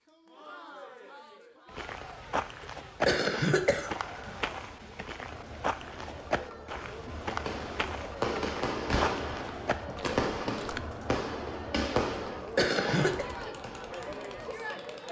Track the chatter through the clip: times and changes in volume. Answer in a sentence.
The chatter can be heard from 0.1 to 15.0 s, getting louder.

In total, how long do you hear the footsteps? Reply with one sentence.
You can hear the footsteps for 9 seconds altogether.